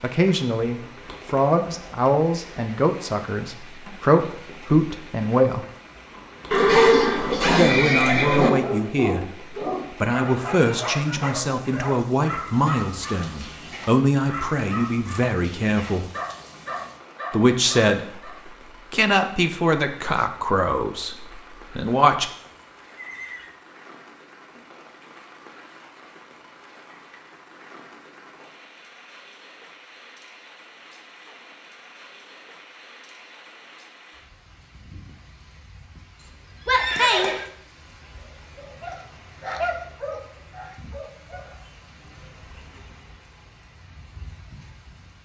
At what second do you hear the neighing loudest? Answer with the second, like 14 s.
7 s.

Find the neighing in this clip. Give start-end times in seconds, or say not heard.
6.5-8.5, 22.4-23.5, 36.1-37.5.